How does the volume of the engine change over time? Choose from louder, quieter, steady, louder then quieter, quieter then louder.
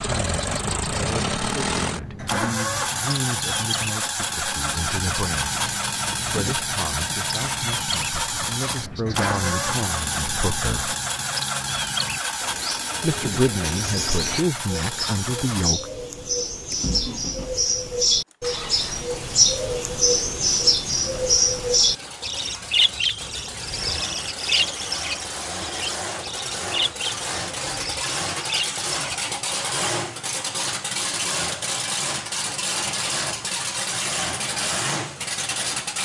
quieter then louder.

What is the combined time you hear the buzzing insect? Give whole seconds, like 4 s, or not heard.
not heard.